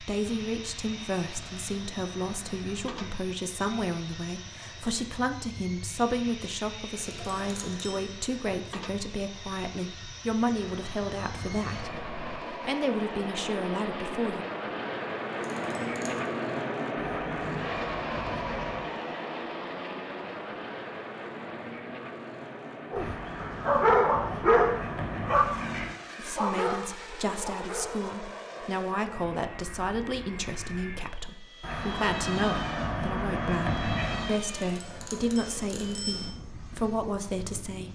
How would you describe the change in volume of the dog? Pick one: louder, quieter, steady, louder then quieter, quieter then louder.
quieter.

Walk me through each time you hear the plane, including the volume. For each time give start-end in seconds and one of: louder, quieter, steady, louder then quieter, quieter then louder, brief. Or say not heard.
0.0-37.9 louder then quieter.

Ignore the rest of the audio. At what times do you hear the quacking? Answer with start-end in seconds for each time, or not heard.
0.3-3.1, 10.6-12.4, 16.9-18.9, 22.9-25.9, 31.6-34.4.